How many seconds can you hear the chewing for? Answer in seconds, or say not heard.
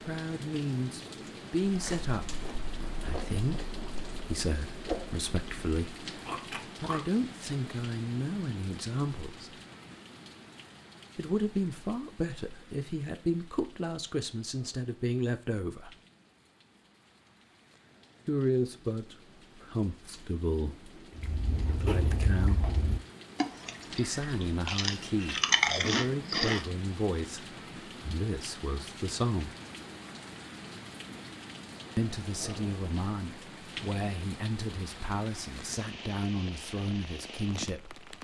11 s.